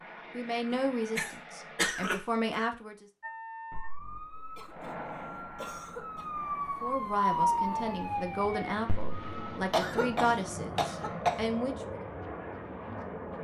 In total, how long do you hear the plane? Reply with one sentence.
The plane can be heard for 11 seconds in total.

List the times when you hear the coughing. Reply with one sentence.
The coughing can be heard from 0.7 to 2.5 s, from 4.5 to 5.0 s, from 5.5 to 6.3 s and from 9.7 to 11.6 s.